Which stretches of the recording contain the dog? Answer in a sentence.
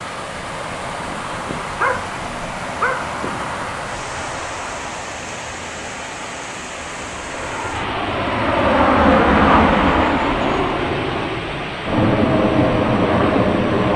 The dog can be heard from 1.0 to 3.5 s.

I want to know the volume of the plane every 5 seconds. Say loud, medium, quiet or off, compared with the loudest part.
quiet, loud, loud.